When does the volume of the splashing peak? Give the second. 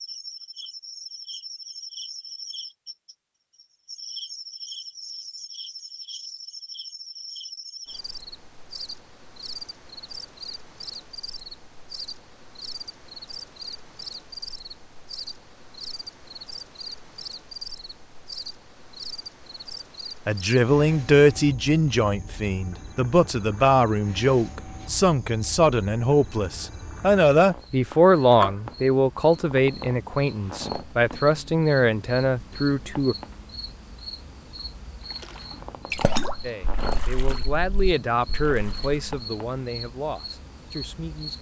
36 s.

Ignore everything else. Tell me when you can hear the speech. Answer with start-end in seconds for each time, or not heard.
20.2-33.1, 36.4-41.3.